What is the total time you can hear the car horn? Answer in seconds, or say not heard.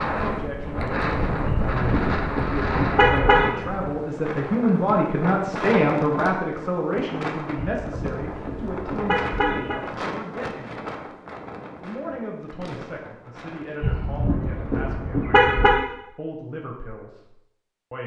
6 s.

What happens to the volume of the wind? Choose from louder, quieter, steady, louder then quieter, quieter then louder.
quieter.